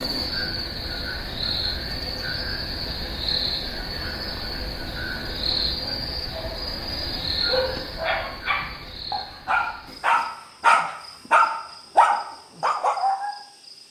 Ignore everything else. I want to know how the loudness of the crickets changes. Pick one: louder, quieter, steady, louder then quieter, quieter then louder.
quieter.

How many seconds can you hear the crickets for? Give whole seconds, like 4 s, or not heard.
14 s.